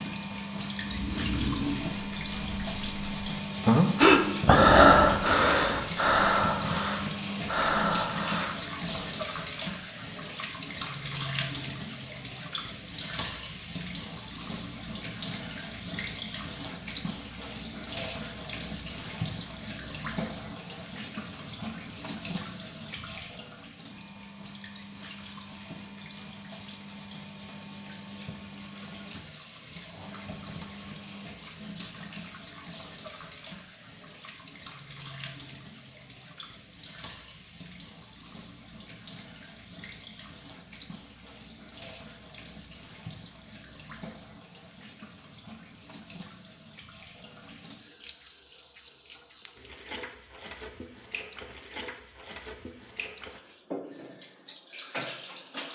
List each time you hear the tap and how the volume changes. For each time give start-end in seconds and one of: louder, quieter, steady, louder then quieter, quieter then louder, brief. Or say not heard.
0.0-55.6 quieter.